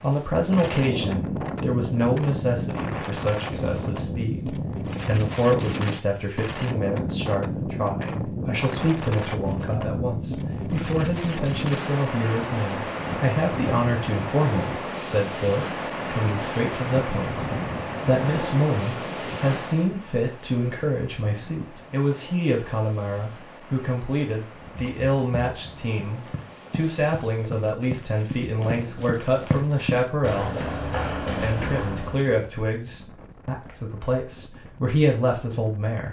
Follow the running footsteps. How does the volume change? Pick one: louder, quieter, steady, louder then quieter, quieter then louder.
louder.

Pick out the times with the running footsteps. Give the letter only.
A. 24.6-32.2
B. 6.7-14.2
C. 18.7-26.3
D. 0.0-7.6
A.